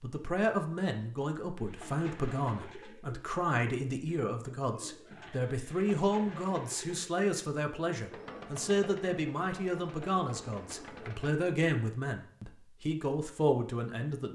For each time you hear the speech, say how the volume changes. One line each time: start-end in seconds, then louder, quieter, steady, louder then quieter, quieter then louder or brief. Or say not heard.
0.0-14.2 steady.